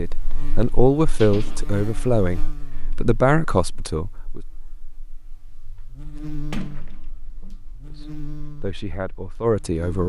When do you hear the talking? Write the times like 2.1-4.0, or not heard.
0.0-4.4, 7.9-10.0.